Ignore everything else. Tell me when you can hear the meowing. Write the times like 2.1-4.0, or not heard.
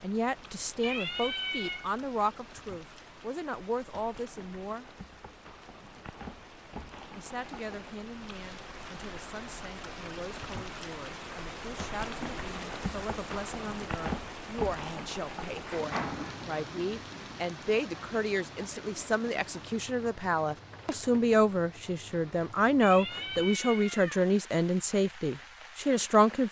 0.8-1.9, 22.8-24.2.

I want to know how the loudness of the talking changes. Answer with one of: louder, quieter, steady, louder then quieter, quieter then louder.
quieter then louder.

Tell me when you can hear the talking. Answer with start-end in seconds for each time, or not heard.
0.0-4.8, 7.2-26.4.